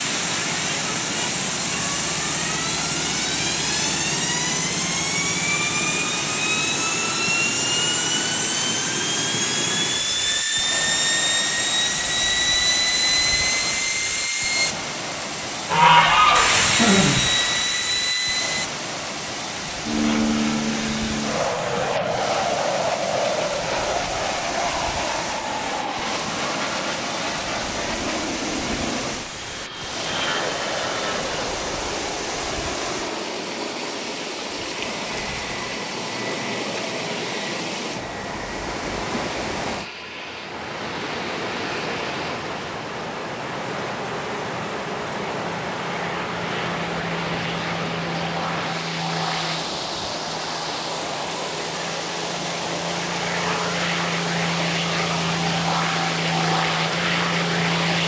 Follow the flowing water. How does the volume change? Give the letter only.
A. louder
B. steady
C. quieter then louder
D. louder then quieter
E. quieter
B.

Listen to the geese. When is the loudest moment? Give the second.
16 s.